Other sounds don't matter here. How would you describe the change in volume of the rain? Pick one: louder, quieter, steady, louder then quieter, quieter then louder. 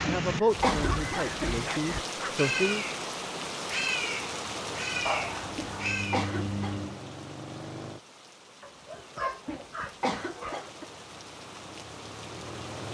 quieter.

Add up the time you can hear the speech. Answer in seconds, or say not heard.
3 s.